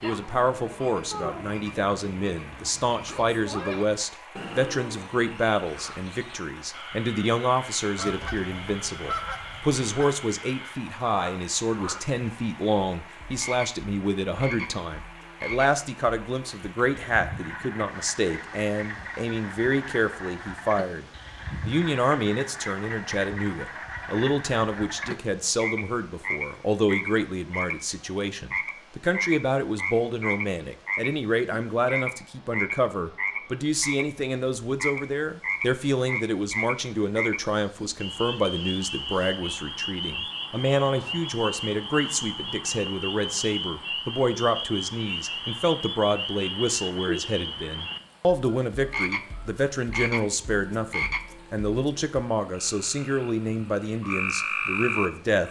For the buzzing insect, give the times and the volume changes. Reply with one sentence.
The buzzing insect can't be heard in this clip.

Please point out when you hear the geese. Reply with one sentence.
The geese can be heard from 8.0 to 10.1 s.